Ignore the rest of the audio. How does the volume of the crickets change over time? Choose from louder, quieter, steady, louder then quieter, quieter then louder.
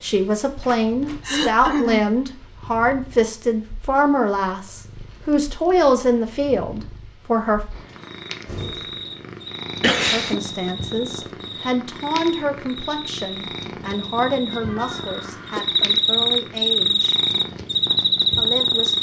louder.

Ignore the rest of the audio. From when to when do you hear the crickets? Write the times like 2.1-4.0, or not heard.
8.2-18.9.